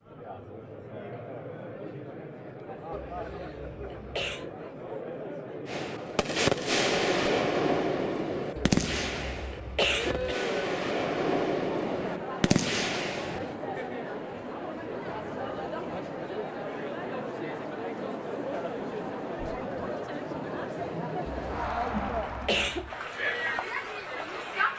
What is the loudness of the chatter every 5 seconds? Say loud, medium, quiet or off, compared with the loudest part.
medium, medium, loud, loud, loud.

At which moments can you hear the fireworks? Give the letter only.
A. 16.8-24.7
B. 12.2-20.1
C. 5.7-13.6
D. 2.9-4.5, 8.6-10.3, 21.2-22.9
C.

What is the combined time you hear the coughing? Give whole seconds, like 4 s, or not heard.
5 s.